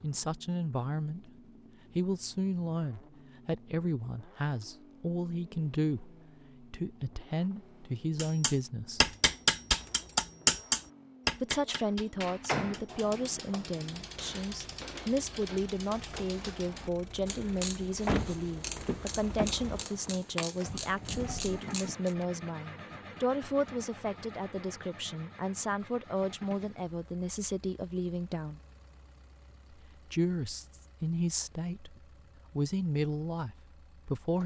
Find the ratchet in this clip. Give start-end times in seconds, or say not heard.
12.8-22.1.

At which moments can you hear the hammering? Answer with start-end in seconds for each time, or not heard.
8.2-16.4.